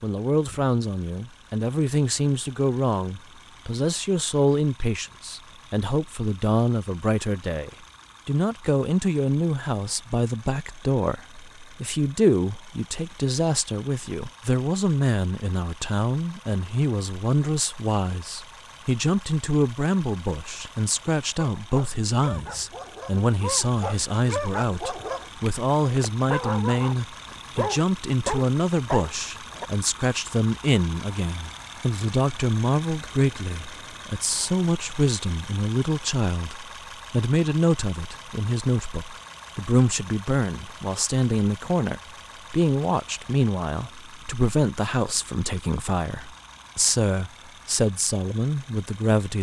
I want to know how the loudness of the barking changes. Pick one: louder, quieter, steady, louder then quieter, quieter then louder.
louder.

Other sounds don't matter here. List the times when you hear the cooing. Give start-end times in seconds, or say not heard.
not heard.